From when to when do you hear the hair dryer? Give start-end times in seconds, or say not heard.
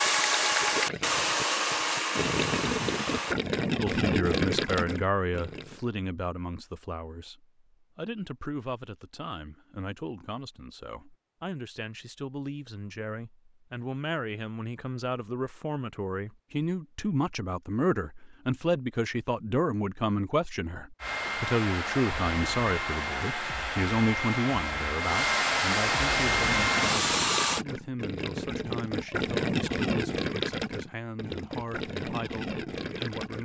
0.0-3.4, 21.0-27.6.